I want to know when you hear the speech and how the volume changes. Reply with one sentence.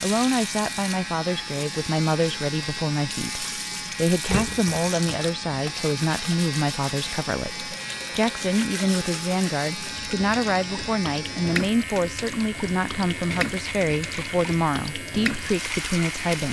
You can hear the speech from 0.0 to 16.4 s, at a steady volume.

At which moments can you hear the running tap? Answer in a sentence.
The running tap can be heard from 0.0 to 16.4 s.